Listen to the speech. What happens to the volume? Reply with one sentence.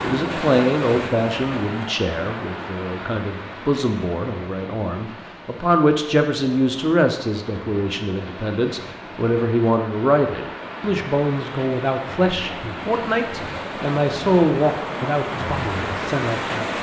The volume of the speech stays about the same.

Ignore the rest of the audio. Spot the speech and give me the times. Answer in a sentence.
The speech can be heard from 0.0 to 16.7 s.